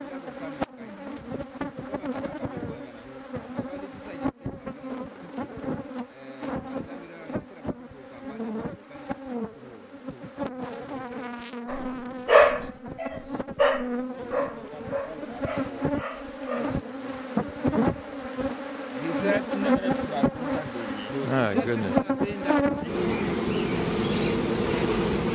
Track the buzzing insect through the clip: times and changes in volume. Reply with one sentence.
You can hear the buzzing insect from 0.0 to 25.3 s, getting louder.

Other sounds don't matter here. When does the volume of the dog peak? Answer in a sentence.
The loudest moment of the dog is at 12 seconds.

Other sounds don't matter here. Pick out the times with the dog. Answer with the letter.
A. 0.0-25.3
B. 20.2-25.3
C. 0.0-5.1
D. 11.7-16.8
D.